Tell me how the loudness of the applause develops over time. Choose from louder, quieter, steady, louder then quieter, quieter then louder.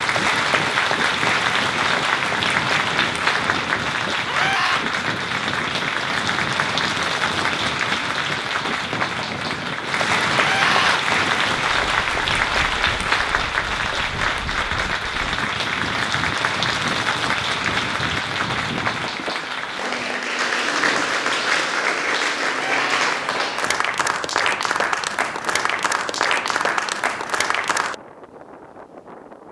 steady.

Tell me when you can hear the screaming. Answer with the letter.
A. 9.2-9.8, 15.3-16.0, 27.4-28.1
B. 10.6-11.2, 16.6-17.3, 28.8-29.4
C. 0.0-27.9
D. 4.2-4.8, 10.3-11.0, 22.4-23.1
D.